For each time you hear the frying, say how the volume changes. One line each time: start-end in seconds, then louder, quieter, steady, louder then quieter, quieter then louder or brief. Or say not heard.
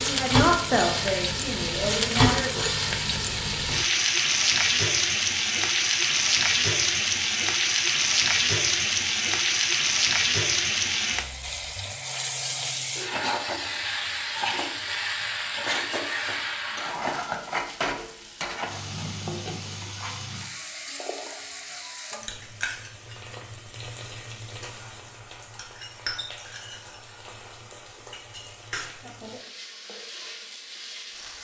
0.0-31.3 quieter.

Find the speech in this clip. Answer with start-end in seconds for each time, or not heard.
0.0-2.8.